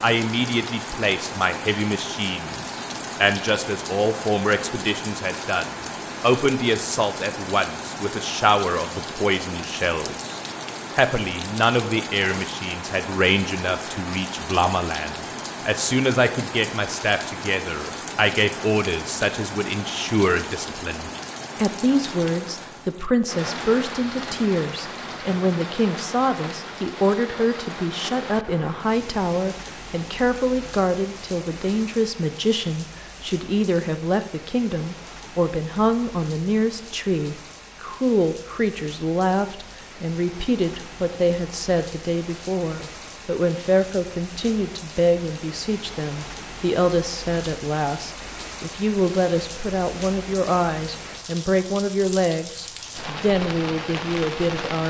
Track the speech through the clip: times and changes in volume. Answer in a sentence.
The speech can be heard from 0.0 to 54.8 s, at a steady volume.